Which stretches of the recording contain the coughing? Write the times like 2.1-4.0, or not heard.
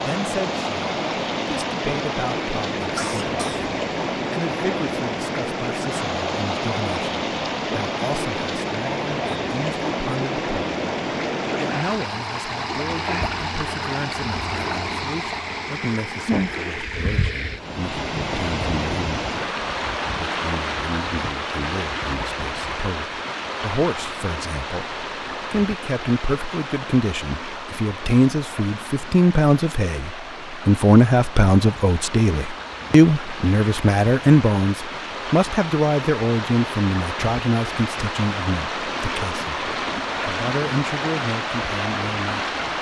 3.0-3.7.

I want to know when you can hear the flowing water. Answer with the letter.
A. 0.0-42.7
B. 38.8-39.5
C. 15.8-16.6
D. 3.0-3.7
A.